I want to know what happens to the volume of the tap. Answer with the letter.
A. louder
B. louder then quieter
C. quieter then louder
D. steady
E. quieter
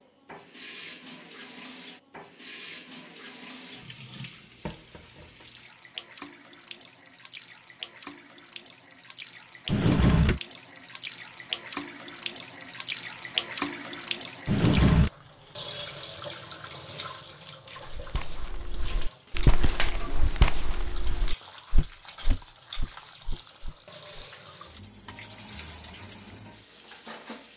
B.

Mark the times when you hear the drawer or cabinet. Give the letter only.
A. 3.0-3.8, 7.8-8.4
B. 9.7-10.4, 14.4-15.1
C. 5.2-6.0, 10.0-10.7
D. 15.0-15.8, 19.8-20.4
B.